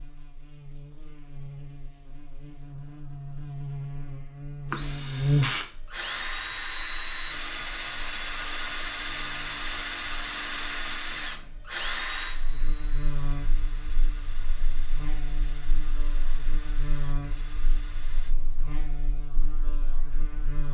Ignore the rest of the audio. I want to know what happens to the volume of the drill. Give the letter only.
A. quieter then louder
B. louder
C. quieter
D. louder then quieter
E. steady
C.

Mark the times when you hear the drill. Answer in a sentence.
You can hear the drill from 4.7 to 18.4 s.